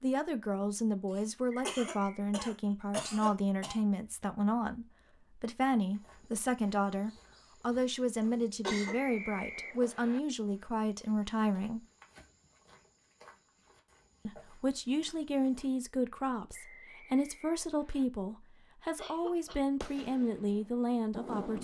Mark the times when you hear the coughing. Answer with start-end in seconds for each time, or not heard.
1.1-3.8, 8.2-9.0, 18.9-19.6.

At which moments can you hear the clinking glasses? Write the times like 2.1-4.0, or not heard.
not heard.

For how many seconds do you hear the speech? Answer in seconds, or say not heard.
19 s.